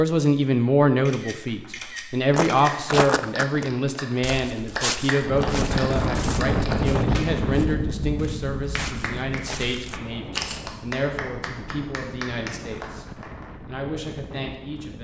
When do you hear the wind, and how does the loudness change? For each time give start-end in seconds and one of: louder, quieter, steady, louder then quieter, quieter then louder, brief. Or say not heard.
5.2-15.0 quieter.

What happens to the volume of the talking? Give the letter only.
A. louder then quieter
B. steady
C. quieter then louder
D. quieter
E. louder
D.